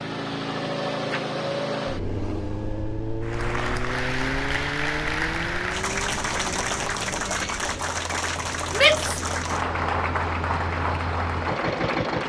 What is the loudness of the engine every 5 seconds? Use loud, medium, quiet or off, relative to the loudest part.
loud, medium, loud.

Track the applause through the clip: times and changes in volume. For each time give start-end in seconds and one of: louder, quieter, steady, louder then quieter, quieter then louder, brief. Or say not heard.
3.2-12.2 steady.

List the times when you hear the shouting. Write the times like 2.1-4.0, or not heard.
8.7-9.2.